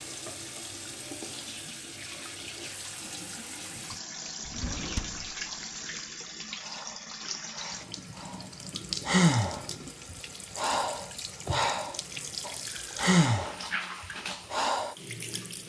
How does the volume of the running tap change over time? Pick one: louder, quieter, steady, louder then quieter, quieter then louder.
steady.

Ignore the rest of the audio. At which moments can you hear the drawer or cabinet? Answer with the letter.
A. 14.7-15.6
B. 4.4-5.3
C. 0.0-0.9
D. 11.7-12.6
B.